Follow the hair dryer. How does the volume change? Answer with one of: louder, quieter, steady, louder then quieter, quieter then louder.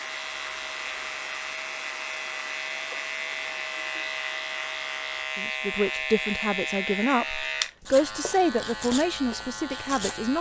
steady.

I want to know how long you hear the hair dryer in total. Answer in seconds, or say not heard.
5 s.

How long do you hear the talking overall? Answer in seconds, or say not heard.
5 s.